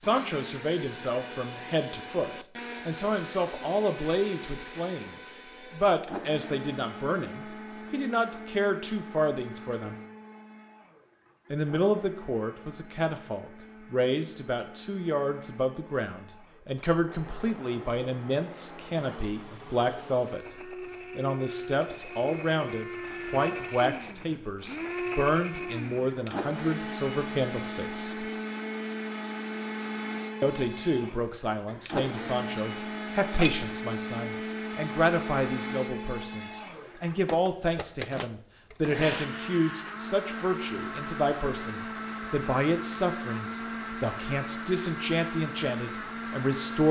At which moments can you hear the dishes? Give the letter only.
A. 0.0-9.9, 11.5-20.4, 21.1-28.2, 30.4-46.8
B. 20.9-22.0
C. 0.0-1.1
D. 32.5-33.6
D.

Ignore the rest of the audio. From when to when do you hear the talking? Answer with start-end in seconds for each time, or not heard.
0.0-9.9, 11.5-20.4, 21.1-28.2, 30.4-46.8.